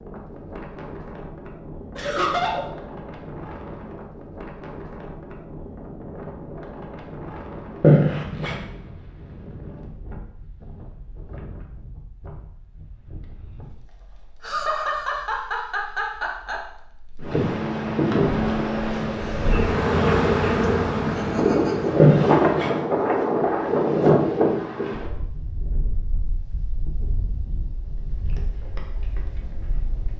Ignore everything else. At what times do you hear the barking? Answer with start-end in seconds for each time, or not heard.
not heard.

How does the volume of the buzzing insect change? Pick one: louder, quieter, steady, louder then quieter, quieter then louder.
louder then quieter.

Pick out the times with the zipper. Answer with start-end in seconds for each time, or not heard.
7.8-8.6, 21.9-22.8.